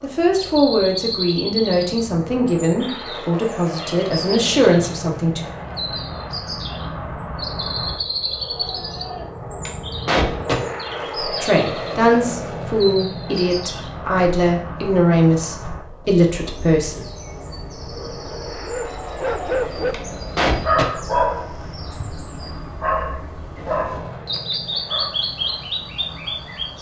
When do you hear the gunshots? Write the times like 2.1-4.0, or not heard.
8.6-10.6, 18.9-20.9.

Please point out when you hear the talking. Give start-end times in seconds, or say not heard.
0.0-5.5, 11.2-17.1.